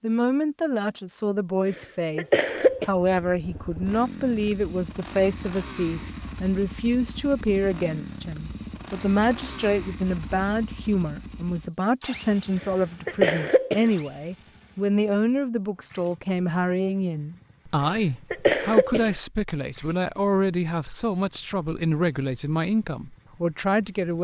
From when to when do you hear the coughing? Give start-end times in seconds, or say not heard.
1.7-2.9, 12.6-13.9, 17.9-19.1.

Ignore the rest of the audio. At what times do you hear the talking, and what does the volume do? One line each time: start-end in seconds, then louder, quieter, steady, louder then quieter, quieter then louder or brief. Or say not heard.
0.0-24.1 steady.